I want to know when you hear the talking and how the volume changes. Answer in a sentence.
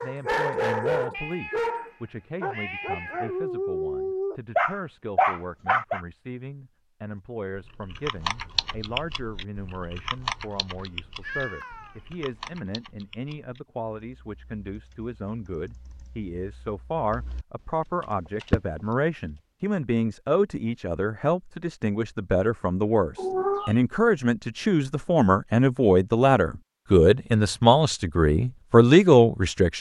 The talking can be heard from 0.0 to 29.7 s, getting louder.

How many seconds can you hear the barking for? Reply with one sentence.
The barking can be heard for 6 seconds in total.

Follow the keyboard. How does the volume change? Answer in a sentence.
The volume of the keyboard goes down, then up.